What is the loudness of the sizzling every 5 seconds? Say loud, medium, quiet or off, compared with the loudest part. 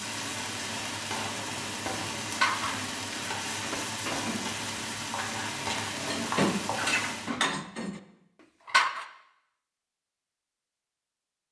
loud, loud, off.